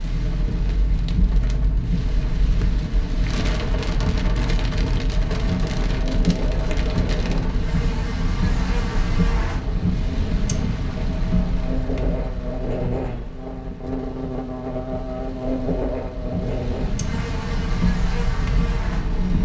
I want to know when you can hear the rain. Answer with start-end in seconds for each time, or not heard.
0.0-19.4.